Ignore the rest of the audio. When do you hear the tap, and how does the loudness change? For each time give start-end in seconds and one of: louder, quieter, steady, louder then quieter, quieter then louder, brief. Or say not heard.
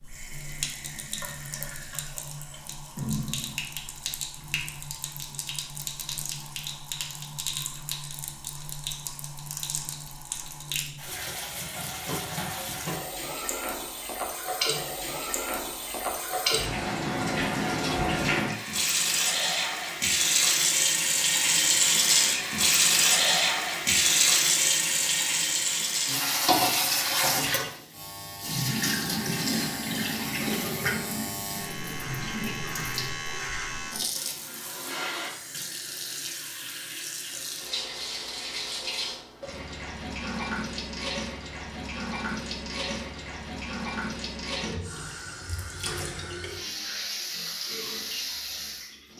0.0-49.1 louder then quieter.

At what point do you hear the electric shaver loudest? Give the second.
33 s.